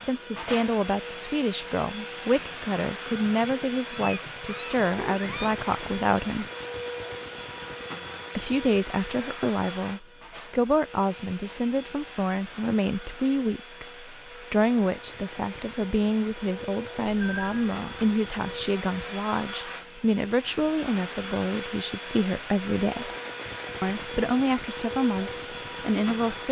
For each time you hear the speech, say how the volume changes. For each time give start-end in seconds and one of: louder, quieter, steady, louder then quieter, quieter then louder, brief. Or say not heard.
0.0-6.5 steady
8.3-23.1 steady
23.8-26.4 brief.